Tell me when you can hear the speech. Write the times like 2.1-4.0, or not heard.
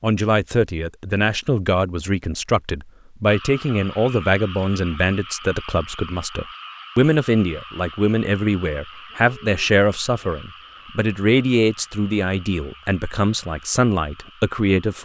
0.0-14.9.